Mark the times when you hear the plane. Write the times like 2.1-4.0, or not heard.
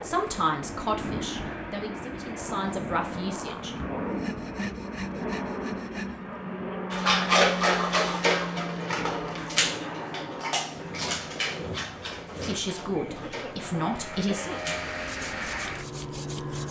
0.0-16.6.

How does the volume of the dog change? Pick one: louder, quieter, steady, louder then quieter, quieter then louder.
quieter.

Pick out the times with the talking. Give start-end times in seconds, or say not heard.
0.0-3.8, 12.3-14.5.